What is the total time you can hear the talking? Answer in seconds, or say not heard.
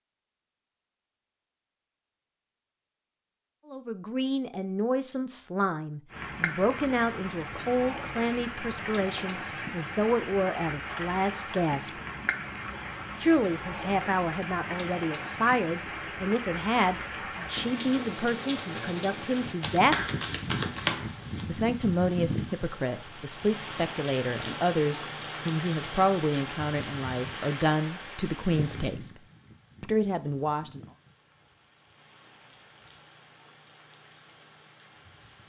24 s.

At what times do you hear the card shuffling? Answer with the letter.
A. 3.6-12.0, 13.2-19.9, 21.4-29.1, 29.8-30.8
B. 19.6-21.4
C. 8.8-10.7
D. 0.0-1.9
B.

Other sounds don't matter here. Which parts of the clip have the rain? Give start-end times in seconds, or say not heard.
6.1-35.4.